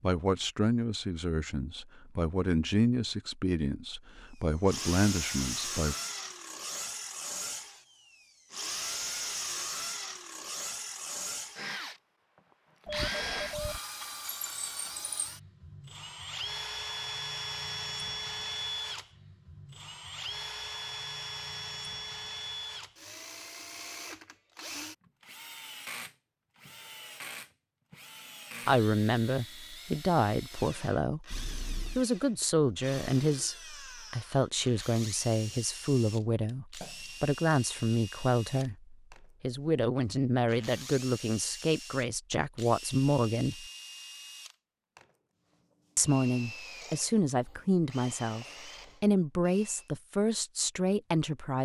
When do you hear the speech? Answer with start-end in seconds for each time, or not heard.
0.0-6.0, 28.6-43.6, 46.0-51.6.